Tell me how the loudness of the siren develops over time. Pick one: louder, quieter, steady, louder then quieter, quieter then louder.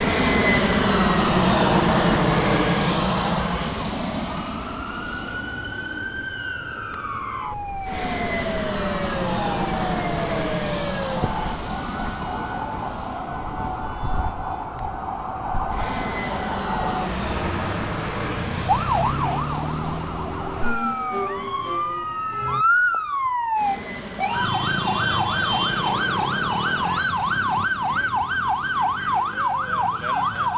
louder.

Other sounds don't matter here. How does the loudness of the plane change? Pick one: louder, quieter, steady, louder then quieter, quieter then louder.
quieter.